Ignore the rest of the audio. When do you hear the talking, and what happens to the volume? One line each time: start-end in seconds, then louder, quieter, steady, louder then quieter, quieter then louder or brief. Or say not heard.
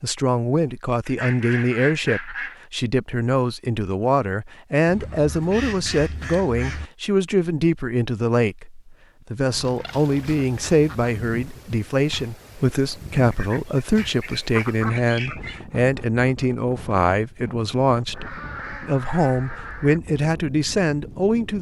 0.0-21.5 steady.